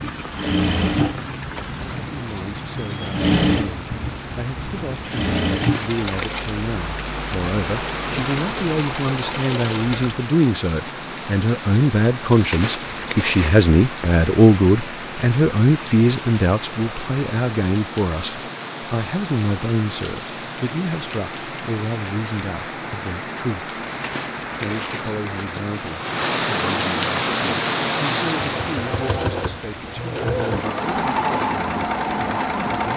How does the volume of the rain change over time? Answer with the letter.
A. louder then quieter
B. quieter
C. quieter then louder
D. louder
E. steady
D.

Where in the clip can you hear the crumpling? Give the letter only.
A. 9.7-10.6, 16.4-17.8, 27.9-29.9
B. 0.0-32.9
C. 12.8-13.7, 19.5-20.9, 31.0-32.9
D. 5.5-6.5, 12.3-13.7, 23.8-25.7
D.